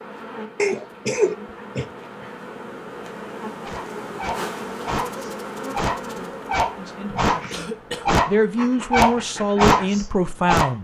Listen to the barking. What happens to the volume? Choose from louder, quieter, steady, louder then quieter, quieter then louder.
louder.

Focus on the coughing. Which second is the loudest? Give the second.
1 s.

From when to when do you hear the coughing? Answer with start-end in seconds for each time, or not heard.
0.6-1.9, 7.5-8.1.